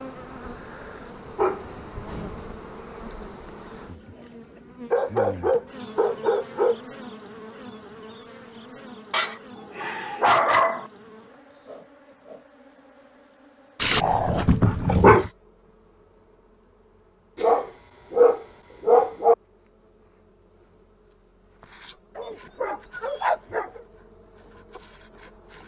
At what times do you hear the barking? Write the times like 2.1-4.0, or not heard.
1.4-2.5, 4.9-6.8, 9.1-10.9, 13.8-15.3, 17.4-19.4, 22.1-23.9.